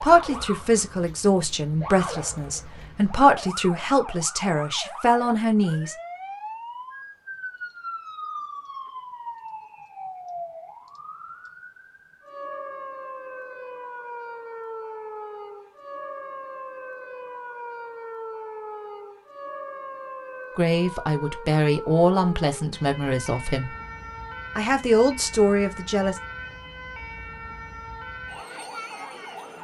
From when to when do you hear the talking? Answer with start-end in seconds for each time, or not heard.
0.0-6.0, 20.6-23.7, 24.6-26.2.